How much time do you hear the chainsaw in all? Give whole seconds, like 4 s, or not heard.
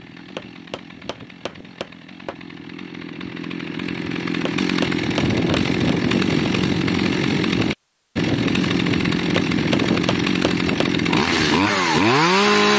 13 s.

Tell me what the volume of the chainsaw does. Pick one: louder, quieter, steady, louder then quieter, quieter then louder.
louder.